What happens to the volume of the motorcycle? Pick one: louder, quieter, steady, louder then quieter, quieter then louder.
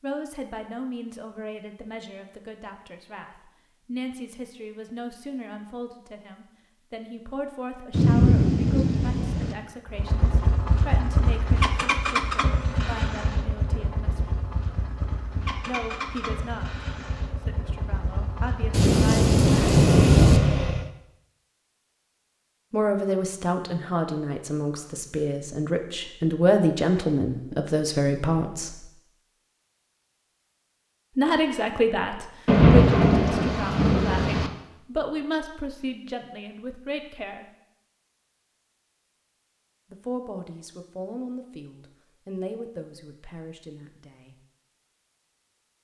quieter then louder.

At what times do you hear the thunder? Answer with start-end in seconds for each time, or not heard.
7.9-9.6, 18.7-20.4, 32.5-34.5.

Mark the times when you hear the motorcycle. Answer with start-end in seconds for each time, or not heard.
9.8-20.9.